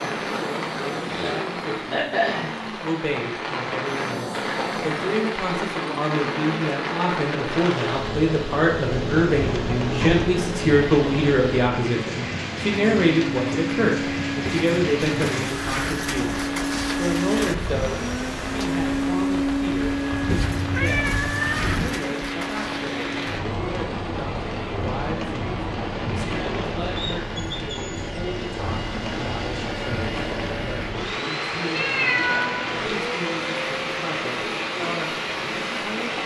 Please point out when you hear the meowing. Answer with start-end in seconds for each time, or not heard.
8.9-10.3, 20.1-21.9, 31.7-32.9.